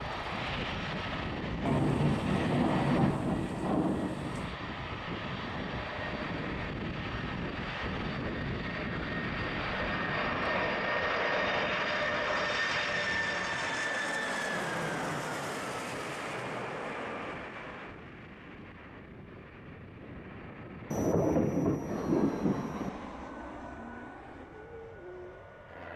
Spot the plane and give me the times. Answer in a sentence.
You can hear the plane from 0.0 to 25.9 s.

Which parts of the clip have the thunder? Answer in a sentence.
The thunder can be heard from 1.6 to 4.5 s and from 20.9 to 22.9 s.